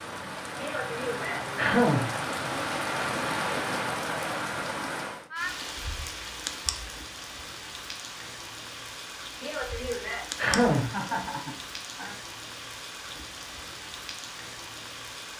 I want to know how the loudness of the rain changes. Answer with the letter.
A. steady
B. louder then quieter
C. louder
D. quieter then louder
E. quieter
E.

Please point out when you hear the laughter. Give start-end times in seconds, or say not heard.
10.8-12.2.